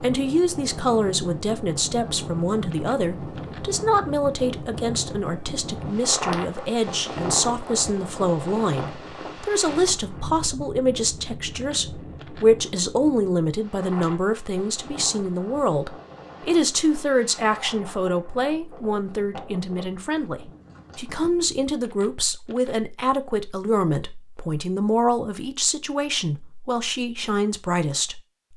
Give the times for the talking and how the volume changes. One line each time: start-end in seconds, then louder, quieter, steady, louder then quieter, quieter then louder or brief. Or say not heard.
0.0-28.2 steady.